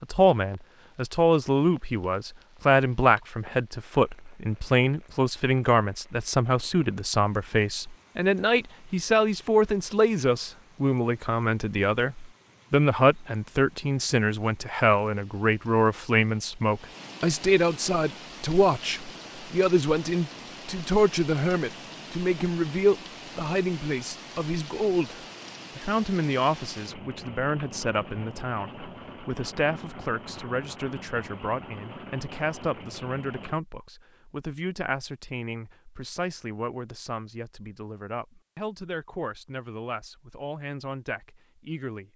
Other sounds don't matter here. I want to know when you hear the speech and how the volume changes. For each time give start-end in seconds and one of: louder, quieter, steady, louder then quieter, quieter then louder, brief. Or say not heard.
0.0-42.1 quieter.